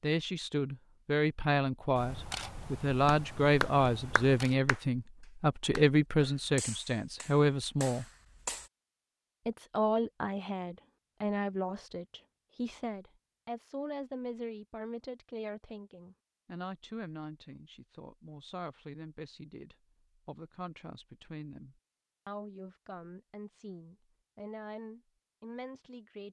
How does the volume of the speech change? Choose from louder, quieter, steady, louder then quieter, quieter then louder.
quieter.